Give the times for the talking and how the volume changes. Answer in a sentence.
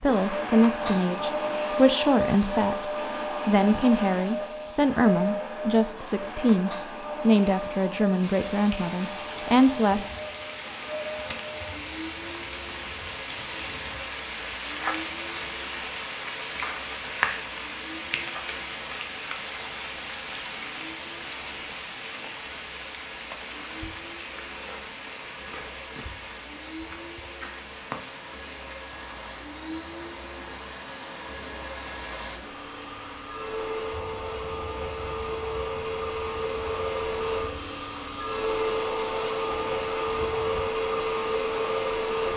You can hear the talking from 0.0 to 10.1 s, at a steady volume.